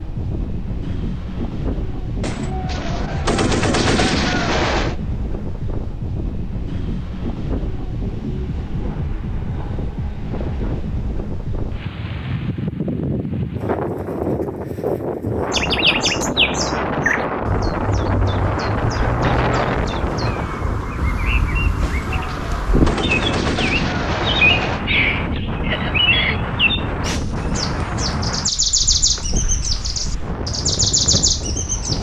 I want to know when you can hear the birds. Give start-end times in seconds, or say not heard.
15.5-31.9.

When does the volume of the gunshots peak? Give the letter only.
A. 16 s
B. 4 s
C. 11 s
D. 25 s
B.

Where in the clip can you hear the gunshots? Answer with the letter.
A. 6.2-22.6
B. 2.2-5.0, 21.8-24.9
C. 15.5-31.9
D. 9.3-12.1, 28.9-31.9
B.